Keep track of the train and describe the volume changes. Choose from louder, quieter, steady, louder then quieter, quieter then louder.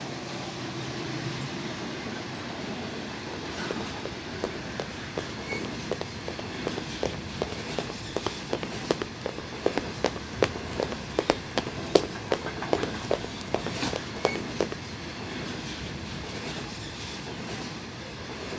steady.